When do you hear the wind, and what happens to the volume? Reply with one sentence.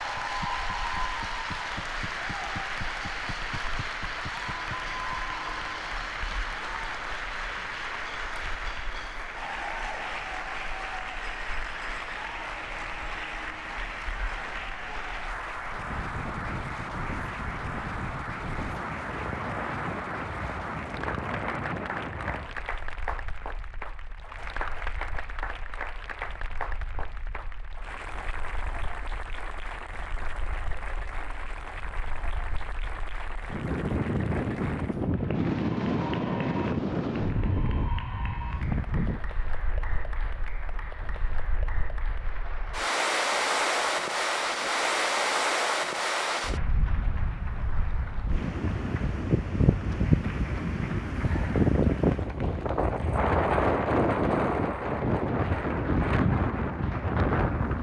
The wind can be heard from 0.0 to 57.7 s, getting louder.